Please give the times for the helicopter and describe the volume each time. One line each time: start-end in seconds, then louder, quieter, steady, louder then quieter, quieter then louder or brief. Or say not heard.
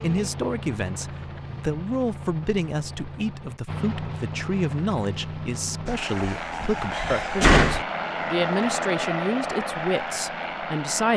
0.0-11.1 louder.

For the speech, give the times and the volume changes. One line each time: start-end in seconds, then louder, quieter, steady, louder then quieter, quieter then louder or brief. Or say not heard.
0.0-11.1 steady.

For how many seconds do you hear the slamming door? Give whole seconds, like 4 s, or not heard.
2 s.